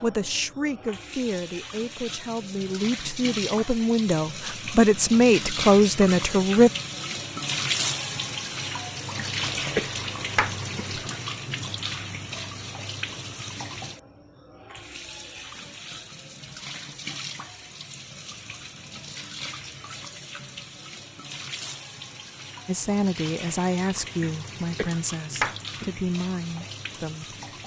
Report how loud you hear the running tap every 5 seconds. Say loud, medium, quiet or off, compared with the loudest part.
medium, loud, medium, medium, medium, medium.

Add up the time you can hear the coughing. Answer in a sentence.
The coughing can be heard for 4 seconds in total.